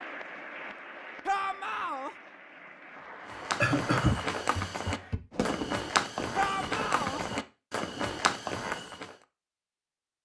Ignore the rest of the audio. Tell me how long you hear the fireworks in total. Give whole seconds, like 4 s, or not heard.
2 s.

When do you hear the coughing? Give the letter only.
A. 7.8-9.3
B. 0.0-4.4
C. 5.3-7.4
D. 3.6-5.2
D.